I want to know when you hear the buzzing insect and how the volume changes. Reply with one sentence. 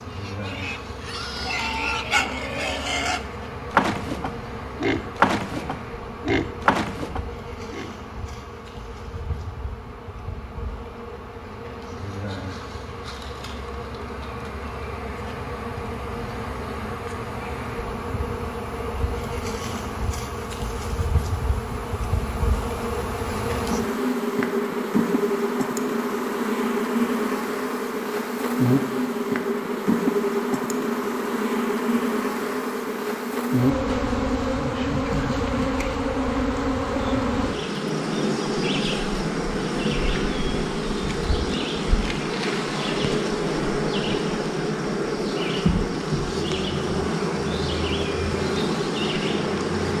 You can hear the buzzing insect from 0.0 to 49.9 s, getting louder.